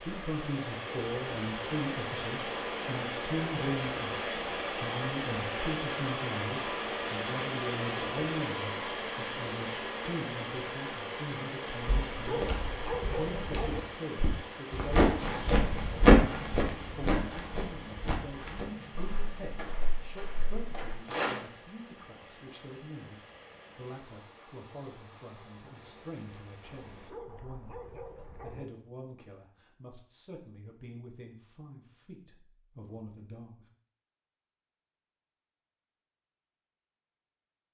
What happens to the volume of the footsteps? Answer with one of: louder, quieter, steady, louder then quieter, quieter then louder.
louder then quieter.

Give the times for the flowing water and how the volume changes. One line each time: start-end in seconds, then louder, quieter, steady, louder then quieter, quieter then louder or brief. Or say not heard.
0.0-27.1 quieter.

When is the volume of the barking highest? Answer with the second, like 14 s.
13 s.